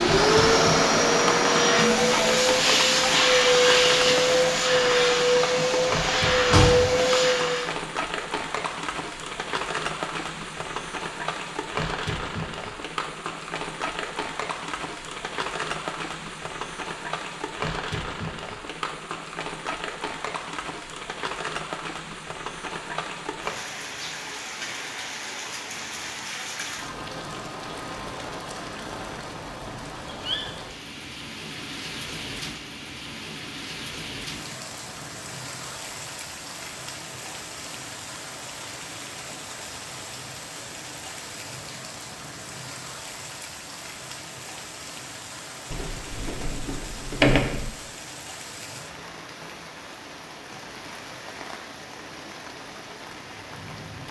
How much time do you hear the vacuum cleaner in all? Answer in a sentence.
You can hear the vacuum cleaner for 8 seconds altogether.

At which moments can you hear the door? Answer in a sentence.
You can hear the door from 6.3 to 7.0 s and from 45.7 to 47.6 s.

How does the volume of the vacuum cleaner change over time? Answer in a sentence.
The volume of the vacuum cleaner stays about the same.